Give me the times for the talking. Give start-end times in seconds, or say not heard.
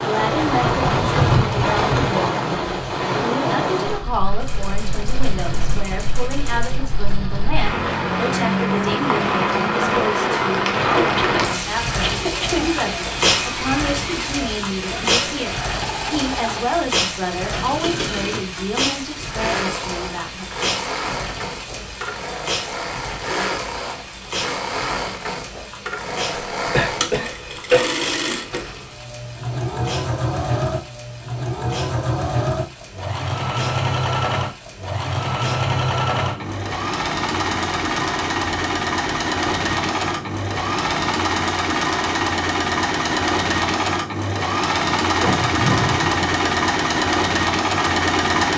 0.0-20.4.